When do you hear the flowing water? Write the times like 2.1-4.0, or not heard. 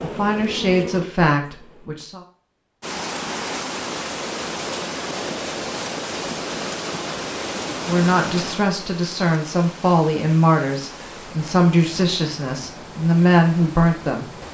2.8-14.4.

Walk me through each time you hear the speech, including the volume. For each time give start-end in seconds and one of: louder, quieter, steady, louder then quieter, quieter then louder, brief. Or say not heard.
0.0-2.2 brief
7.8-14.3 louder.